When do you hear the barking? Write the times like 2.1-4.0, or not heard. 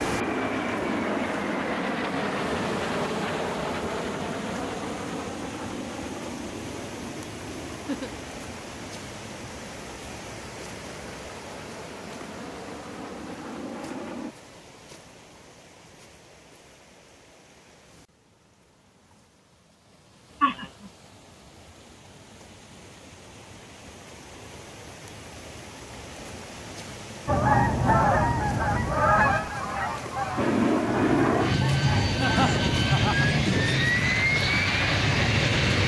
not heard.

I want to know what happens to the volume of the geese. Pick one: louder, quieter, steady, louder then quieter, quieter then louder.
quieter.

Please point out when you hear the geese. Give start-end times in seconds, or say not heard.
27.2-32.8.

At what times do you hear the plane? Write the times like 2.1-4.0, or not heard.
0.0-14.3, 30.4-35.8.